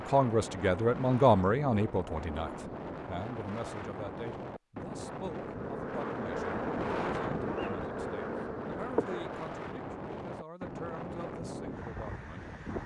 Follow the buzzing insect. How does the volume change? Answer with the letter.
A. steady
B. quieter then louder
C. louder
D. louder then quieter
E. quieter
A.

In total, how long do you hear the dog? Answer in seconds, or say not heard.
not heard.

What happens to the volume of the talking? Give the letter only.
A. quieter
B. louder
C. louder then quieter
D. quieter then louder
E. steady
A.